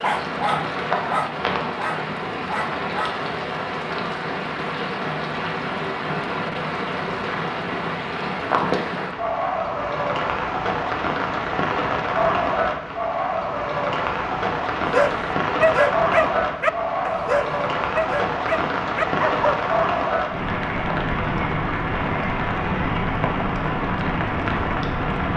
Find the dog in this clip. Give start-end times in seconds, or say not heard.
0.0-3.2, 14.9-19.6.